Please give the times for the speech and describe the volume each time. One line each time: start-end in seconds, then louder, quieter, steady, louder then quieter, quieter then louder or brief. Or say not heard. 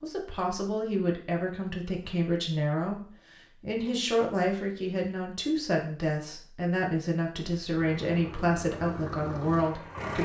0.0-10.2 steady.